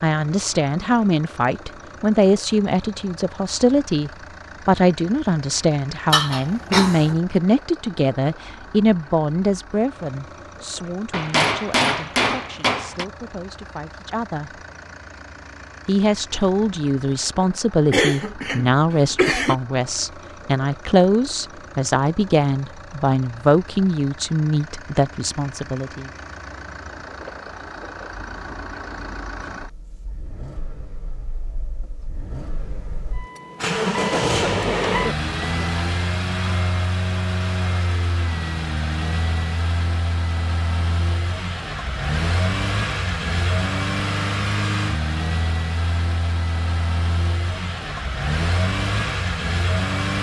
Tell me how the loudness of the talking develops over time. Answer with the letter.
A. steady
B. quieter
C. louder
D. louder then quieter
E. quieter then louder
E.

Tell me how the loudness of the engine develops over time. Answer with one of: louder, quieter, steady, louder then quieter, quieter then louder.
louder.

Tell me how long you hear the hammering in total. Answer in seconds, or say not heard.
2 s.